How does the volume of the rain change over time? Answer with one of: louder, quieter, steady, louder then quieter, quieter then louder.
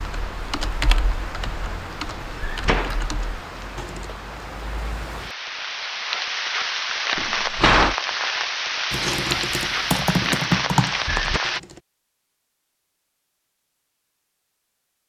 louder.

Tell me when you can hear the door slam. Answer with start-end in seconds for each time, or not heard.
2.4-3.1, 7.2-8.0, 10.8-11.4.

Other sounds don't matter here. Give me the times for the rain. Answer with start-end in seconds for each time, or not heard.
0.0-11.6.